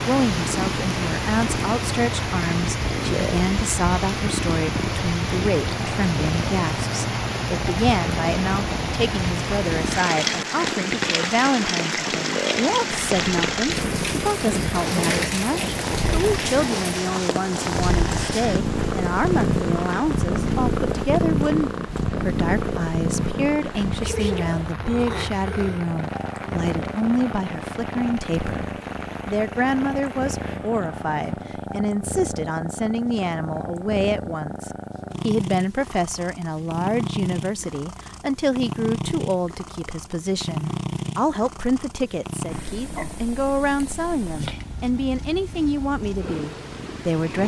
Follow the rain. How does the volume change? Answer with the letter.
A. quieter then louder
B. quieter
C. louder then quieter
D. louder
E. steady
B.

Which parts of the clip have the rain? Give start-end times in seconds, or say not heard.
0.0-31.5.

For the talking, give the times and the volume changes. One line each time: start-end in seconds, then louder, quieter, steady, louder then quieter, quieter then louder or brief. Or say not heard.
0.1-47.4 steady.